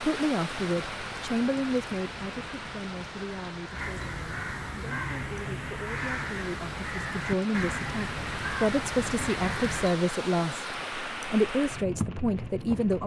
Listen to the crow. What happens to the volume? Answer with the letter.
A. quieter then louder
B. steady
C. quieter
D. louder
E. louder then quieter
D.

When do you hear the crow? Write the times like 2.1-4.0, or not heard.
0.7-9.9.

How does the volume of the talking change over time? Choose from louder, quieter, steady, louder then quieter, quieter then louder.
quieter then louder.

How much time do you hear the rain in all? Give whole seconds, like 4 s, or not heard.
13 s.